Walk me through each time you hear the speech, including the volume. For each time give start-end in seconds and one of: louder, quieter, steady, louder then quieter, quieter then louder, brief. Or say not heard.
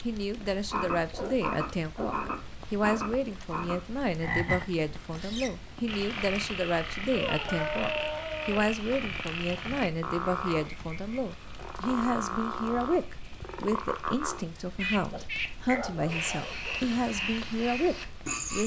0.0-18.6 steady.